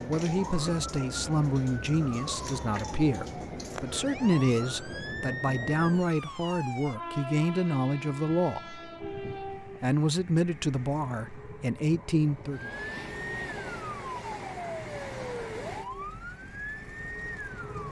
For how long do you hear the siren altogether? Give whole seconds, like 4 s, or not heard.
12 s.